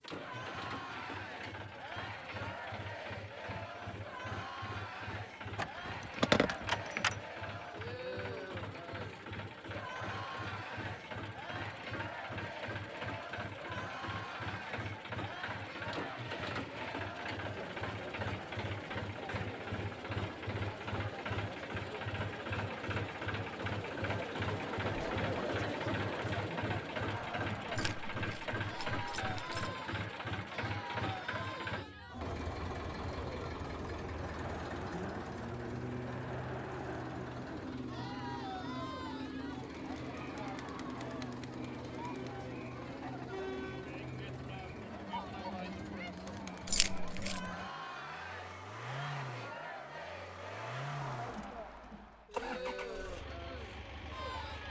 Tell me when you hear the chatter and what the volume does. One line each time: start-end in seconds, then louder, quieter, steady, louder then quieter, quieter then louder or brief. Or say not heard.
0.1-54.6 steady.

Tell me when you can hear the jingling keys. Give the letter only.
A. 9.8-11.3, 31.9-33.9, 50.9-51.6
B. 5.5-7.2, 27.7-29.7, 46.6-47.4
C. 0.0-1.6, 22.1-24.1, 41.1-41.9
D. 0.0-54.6
B.